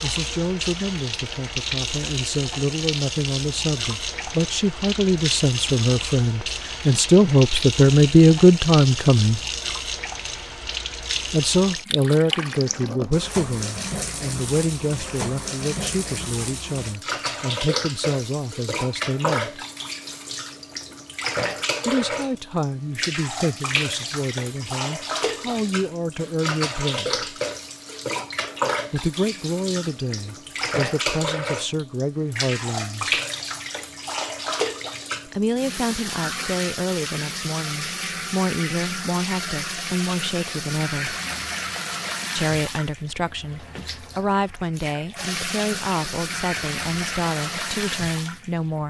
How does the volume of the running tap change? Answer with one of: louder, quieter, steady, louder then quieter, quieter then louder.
steady.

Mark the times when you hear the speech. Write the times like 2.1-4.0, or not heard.
0.0-9.4, 11.3-19.6, 21.9-27.2, 28.9-33.2, 35.2-41.1, 42.4-48.8.